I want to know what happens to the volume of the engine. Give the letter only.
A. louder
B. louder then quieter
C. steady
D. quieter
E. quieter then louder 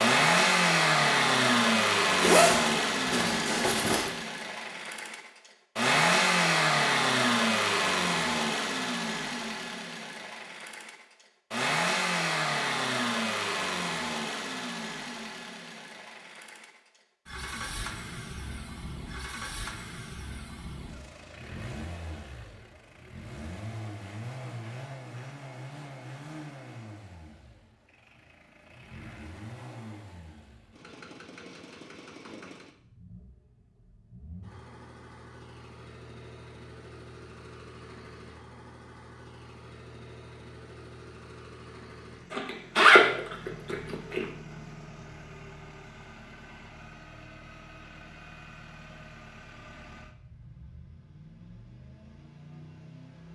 D.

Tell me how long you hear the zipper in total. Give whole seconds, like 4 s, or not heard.
4 s.